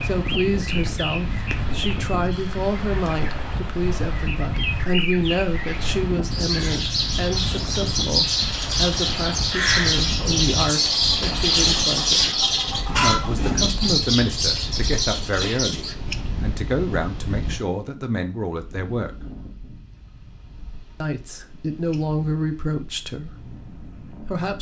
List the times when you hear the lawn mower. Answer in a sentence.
You can't hear the lawn mower here.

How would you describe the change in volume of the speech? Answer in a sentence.
The loudness of the speech stays about the same.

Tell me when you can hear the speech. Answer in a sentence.
You can hear the speech from 0.0 to 12.3 s, from 13.0 to 19.1 s and from 21.0 to 24.5 s.